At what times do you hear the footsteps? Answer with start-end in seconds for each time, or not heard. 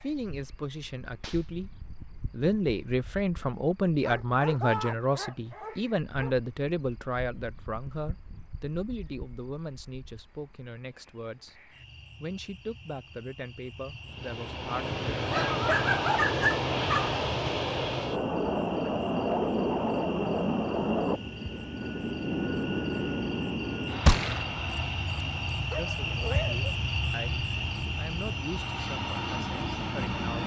not heard.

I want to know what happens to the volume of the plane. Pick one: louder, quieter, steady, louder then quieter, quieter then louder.
quieter.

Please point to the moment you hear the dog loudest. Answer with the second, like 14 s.
16 s.